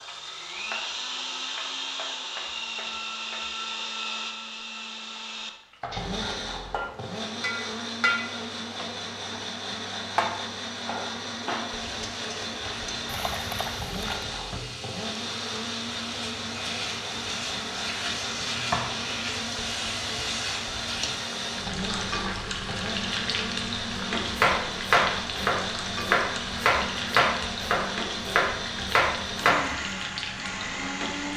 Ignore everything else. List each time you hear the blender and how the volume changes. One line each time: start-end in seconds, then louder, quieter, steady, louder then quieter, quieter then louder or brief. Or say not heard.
0.0-31.3 steady.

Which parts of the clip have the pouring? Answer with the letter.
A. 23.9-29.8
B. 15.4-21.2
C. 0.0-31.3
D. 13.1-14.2
D.